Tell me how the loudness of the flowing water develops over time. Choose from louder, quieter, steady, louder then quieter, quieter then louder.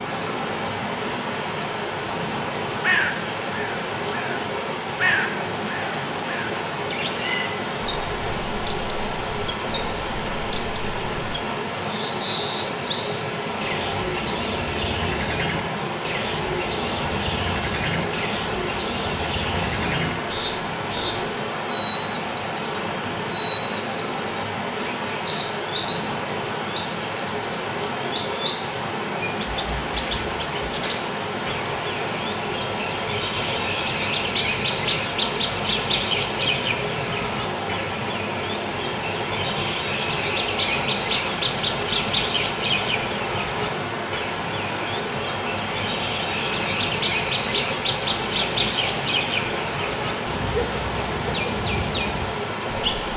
steady.